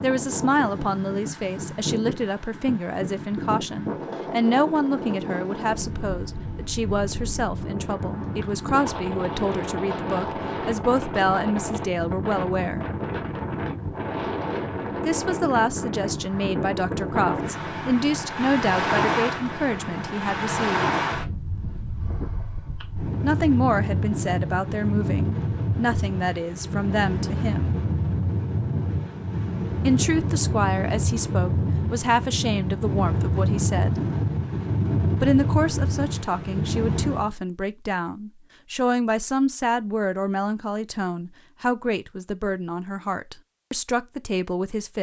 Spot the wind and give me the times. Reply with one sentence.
You can hear the wind from 0.0 to 37.3 s.